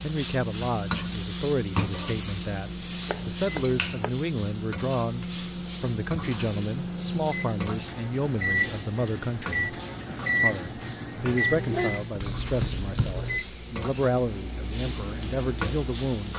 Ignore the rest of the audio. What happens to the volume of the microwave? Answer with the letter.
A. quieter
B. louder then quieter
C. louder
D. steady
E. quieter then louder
B.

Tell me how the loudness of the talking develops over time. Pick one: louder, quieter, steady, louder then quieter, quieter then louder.
steady.